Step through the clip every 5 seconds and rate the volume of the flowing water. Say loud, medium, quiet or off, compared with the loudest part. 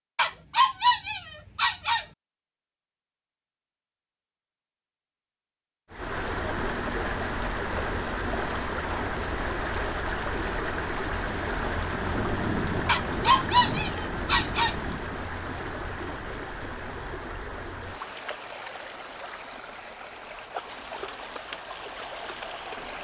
off, loud, loud, medium, medium.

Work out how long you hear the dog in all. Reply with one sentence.
The dog can be heard for 4 seconds in total.